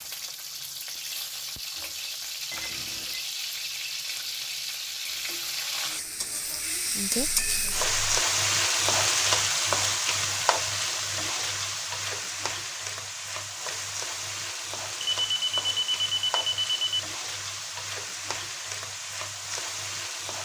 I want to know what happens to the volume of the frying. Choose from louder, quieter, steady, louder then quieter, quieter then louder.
louder then quieter.